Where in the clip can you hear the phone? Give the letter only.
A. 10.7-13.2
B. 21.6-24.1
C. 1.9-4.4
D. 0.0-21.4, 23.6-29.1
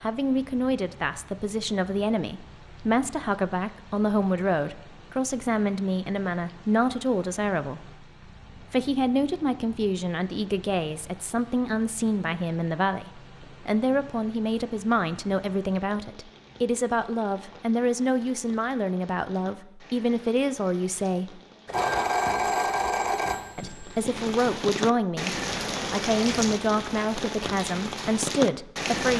B.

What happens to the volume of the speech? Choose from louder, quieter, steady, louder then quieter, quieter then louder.
steady.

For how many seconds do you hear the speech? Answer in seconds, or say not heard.
27 s.